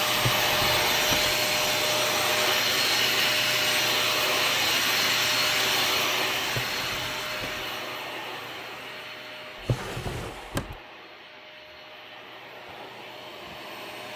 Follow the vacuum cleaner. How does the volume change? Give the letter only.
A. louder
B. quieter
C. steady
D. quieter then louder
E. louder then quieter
B.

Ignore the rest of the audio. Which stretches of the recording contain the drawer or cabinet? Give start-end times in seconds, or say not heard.
0.1-1.4, 6.5-7.7, 9.6-10.8.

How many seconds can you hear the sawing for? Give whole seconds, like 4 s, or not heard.
not heard.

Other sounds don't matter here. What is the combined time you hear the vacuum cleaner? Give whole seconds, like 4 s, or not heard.
14 s.